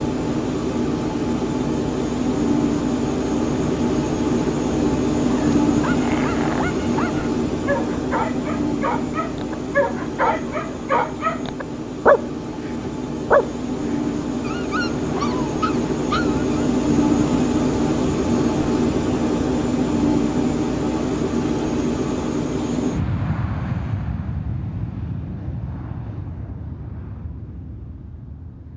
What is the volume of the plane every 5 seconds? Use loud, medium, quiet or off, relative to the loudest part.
loud, loud, medium, loud, loud, quiet.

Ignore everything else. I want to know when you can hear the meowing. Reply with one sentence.
The meowing can't be heard in this clip.